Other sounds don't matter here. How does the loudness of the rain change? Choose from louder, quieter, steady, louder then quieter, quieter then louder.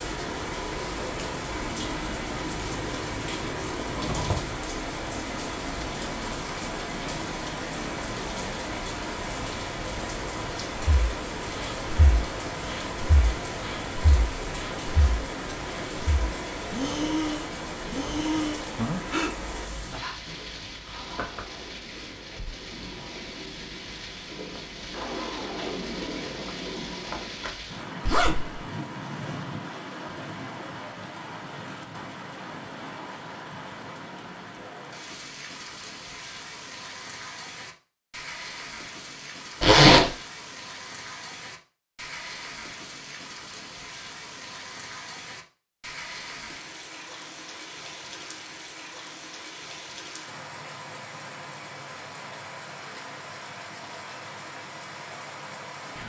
quieter.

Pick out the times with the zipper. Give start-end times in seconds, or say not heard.
3.6-4.5, 28.1-28.6, 39.6-40.1.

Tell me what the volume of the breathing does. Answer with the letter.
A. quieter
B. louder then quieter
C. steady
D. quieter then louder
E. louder
E.